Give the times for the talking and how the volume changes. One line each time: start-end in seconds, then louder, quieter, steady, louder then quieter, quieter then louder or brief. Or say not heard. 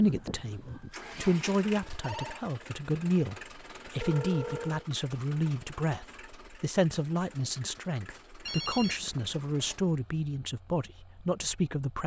0.0-12.0 steady.